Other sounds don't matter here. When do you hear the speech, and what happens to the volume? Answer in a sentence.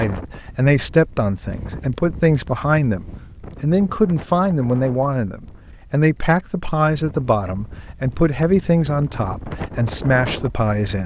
The speech can be heard from 0.0 to 11.0 s, at a steady volume.